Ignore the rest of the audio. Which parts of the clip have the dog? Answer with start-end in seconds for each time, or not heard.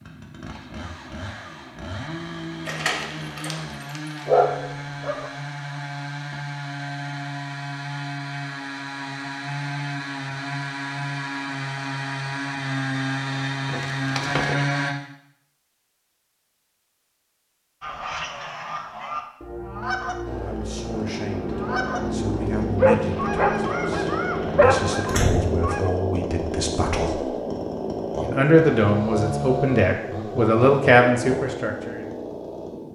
4.2-5.3, 22.8-25.1.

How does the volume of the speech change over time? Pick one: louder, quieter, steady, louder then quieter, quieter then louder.
louder.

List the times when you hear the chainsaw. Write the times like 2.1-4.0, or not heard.
0.0-14.9, 20.2-32.8.